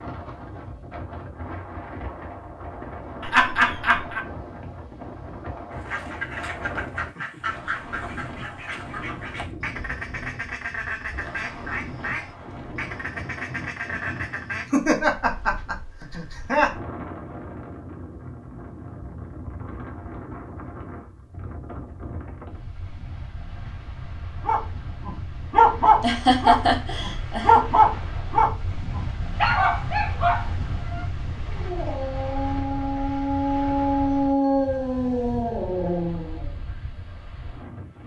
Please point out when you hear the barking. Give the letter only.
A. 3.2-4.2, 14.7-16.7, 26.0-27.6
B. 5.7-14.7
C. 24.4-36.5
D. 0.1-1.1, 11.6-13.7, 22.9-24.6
C.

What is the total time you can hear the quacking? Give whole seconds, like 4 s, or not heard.
9 s.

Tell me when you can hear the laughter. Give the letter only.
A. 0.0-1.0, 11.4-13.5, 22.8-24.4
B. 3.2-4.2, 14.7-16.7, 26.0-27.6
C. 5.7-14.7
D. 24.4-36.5
B.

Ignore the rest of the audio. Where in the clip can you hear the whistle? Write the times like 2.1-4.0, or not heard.
not heard.